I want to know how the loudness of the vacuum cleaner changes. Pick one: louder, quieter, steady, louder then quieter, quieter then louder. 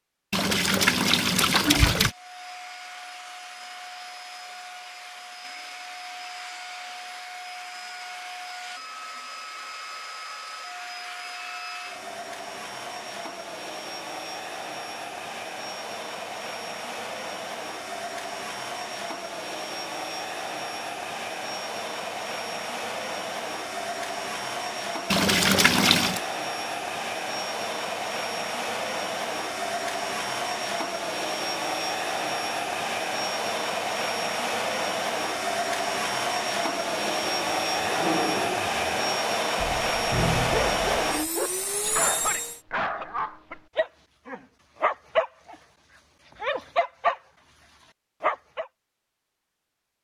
louder.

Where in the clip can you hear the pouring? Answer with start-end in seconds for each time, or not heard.
0.3-2.1, 25.1-26.2.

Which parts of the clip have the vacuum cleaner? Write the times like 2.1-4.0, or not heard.
1.9-42.6.